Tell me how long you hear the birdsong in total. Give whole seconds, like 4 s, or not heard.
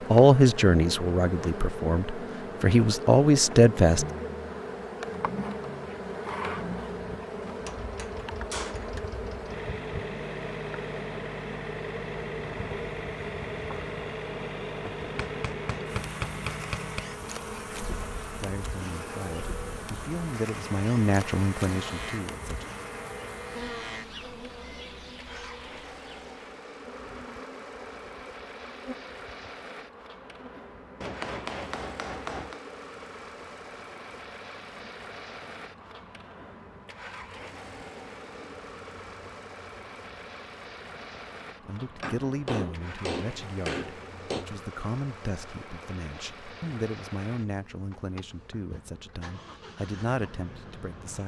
not heard.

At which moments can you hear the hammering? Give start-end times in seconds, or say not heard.
7.5-9.1, 15.0-17.0, 31.0-32.6, 42.0-44.5.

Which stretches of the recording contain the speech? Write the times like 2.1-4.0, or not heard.
0.1-4.0, 18.4-22.6, 41.6-51.2.